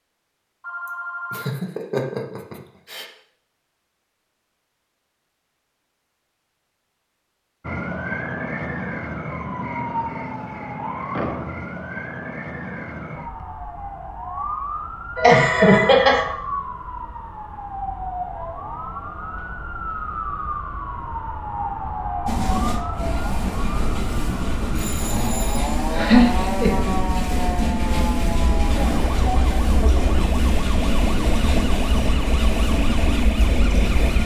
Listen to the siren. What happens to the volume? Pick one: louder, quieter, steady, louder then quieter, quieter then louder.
steady.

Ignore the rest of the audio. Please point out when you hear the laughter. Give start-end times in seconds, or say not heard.
0.8-3.0, 15.2-16.2, 25.9-26.9.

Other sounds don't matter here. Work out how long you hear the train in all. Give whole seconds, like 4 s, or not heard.
12 s.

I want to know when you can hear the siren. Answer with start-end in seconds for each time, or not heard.
7.6-34.2.